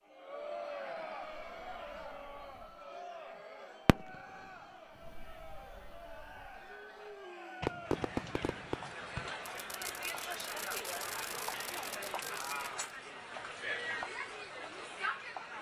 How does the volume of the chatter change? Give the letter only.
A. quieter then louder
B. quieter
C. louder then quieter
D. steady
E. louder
A.